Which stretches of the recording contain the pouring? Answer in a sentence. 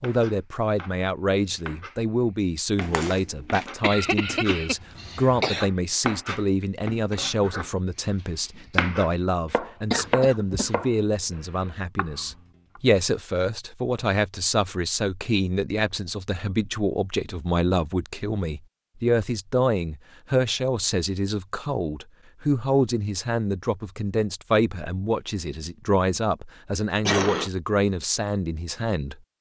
The pouring can't be heard in this clip.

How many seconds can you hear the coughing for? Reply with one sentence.
You can hear the coughing for 3 seconds altogether.